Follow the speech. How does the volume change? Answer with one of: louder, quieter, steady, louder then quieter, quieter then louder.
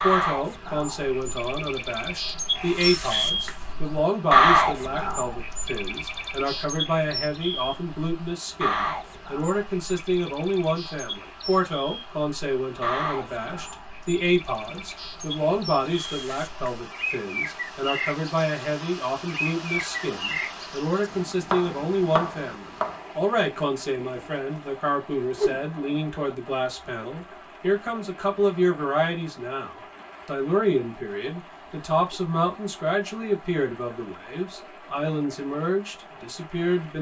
steady.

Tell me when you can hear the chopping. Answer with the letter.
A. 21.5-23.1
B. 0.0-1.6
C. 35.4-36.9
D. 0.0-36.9
A.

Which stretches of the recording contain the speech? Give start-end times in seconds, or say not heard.
0.0-36.9.